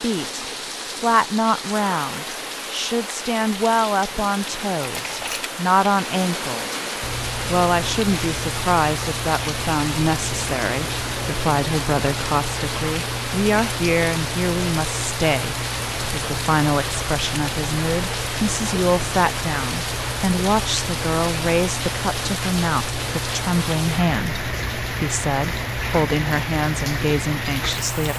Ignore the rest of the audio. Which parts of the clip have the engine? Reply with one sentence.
You can hear the engine from 7.0 to 28.1 s.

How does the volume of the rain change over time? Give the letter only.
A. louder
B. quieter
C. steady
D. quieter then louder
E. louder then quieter
C.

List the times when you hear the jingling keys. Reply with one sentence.
You can hear the jingling keys from 4.8 to 5.5 s.